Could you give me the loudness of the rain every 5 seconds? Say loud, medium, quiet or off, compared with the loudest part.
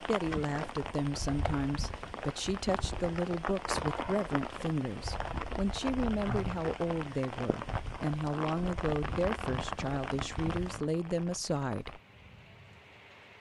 loud, loud, medium.